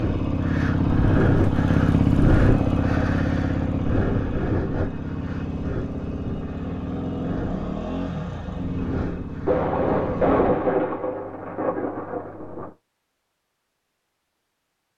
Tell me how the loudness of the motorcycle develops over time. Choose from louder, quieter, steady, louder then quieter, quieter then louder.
quieter.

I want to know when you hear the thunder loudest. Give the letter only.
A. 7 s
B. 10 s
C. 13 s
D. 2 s
B.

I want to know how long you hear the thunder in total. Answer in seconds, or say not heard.
3 s.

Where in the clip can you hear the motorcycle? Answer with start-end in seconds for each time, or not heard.
0.0-10.6.